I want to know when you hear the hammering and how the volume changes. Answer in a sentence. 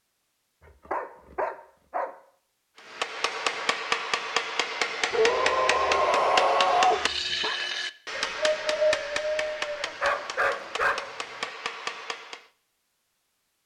The hammering can be heard from 2.8 to 12.4 s, getting quieter.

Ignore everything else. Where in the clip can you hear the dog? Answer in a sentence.
The dog can be heard from 0.8 to 2.1 s, from 5.1 to 7.5 s and from 9.8 to 11.5 s.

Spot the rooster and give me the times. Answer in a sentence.
The rooster can be heard from 8.2 to 9.8 s.